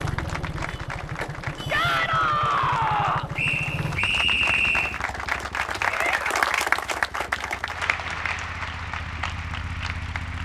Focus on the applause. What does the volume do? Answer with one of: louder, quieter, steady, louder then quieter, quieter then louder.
louder then quieter.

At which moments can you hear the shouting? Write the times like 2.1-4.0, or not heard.
1.7-3.3, 5.8-6.5.